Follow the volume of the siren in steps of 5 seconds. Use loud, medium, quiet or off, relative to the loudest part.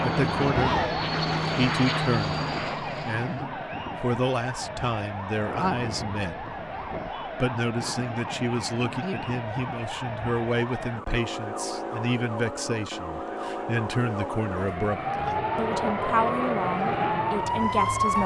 loud, medium, medium, loud.